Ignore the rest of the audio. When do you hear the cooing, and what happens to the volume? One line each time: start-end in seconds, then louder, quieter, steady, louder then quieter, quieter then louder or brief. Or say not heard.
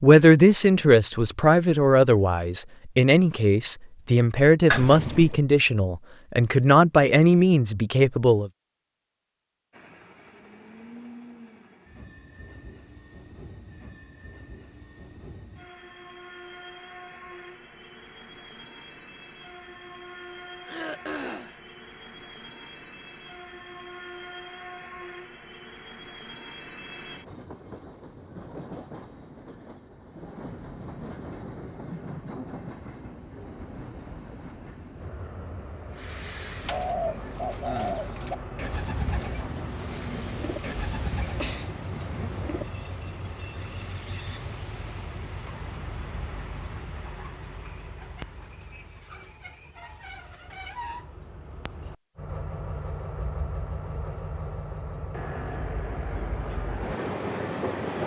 36.6-42.6 quieter.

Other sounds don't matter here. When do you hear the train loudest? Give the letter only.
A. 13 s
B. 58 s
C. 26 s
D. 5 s
B.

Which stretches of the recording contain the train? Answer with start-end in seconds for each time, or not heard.
9.7-58.0.